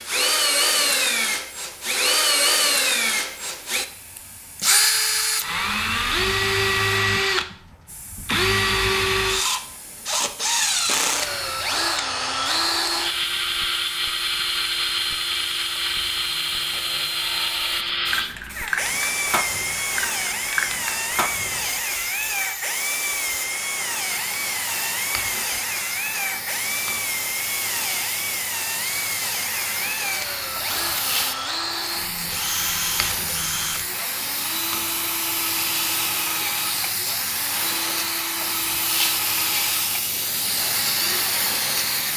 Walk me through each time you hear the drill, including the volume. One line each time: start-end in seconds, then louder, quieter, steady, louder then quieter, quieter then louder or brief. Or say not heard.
0.0-42.1 quieter.